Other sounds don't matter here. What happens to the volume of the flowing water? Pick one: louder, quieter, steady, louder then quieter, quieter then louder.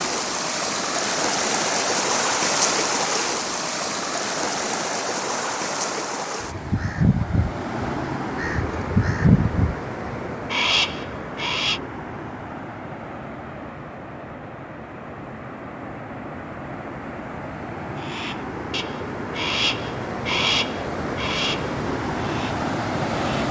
quieter then louder.